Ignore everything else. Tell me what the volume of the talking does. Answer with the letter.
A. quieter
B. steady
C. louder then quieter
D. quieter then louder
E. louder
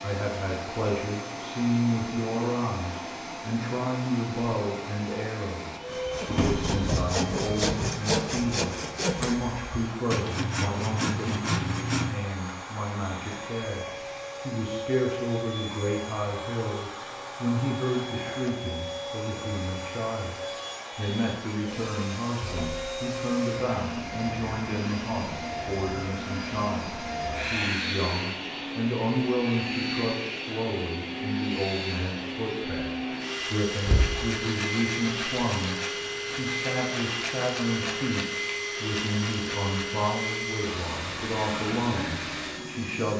B.